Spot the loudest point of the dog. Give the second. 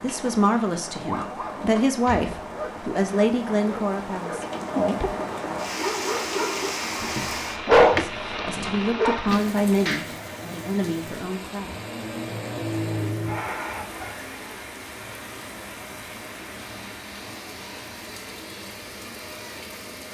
8 s.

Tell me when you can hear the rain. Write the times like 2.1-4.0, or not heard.
0.0-20.1.